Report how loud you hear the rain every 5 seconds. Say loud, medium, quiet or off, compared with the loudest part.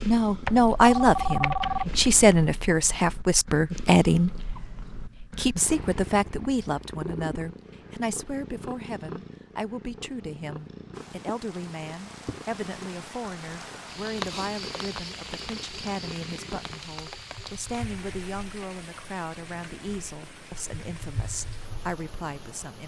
off, off, loud, loud, medium.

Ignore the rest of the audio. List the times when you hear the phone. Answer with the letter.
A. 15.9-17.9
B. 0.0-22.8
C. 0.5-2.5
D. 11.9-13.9
C.